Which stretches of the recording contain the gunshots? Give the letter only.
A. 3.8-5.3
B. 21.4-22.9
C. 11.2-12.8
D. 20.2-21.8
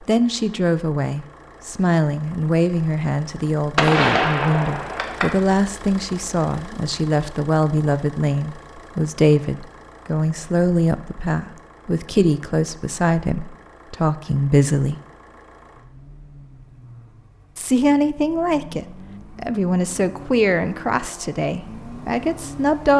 A.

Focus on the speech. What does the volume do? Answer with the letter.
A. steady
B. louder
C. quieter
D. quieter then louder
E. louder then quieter
A.